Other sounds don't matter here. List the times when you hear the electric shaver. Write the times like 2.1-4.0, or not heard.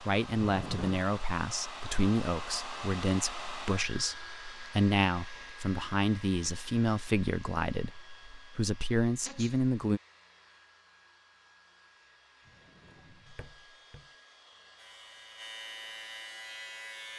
14.8-17.1.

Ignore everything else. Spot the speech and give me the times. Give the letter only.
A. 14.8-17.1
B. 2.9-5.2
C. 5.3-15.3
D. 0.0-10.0
D.